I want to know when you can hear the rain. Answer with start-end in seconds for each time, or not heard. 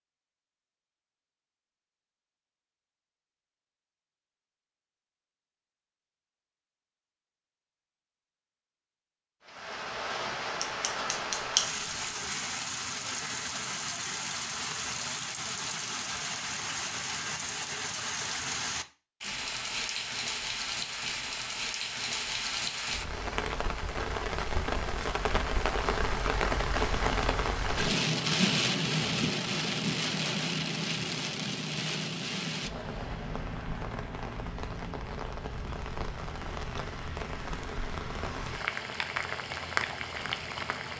9.4-40.9.